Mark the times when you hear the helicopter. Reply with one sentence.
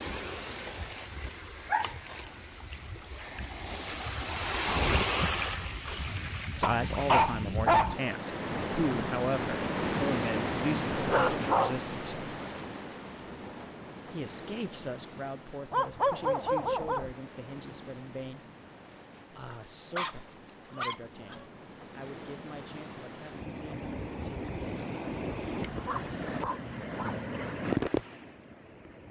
The helicopter can't be heard in this clip.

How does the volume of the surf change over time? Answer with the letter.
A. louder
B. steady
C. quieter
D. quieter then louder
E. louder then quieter
D.